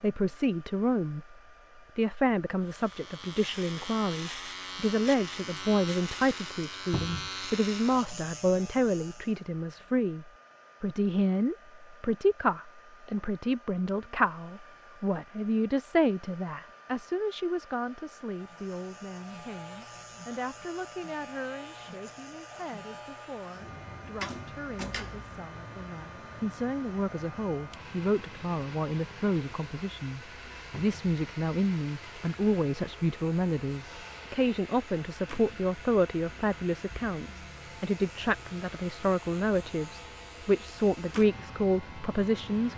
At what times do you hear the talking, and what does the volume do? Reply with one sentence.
You can hear the talking briefly from 0.0 to 1.4 s; and from 1.9 to 42.7 s, getting quieter then louder.